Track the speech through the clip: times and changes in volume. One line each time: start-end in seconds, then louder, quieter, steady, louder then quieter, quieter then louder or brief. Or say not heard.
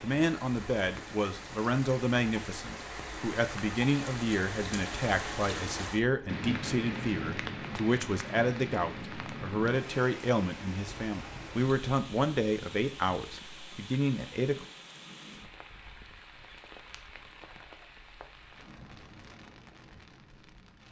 0.0-14.7 steady.